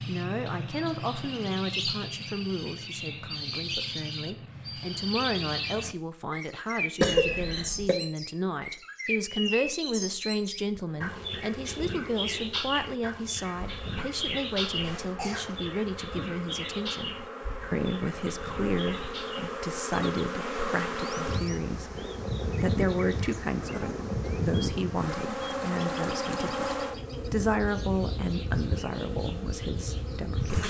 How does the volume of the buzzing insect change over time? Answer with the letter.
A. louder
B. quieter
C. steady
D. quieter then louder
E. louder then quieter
A.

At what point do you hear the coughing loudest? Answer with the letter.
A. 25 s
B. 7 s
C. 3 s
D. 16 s
B.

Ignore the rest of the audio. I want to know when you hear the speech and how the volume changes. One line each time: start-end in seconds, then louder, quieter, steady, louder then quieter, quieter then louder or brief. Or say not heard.
0.1-30.6 steady.